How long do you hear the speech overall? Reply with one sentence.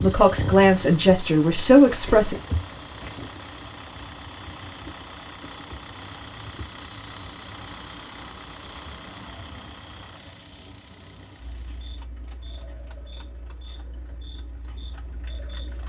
The speech can be heard for 2 seconds in total.